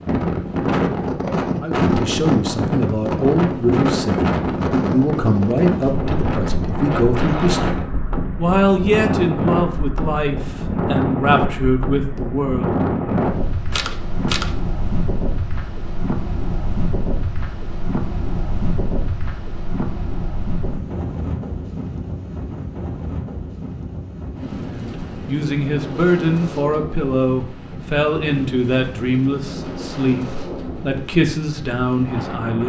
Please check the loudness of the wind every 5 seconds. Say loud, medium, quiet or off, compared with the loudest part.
loud, loud, loud, medium, medium, medium, medium.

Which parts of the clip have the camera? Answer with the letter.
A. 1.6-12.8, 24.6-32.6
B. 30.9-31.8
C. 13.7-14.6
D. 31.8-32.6
C.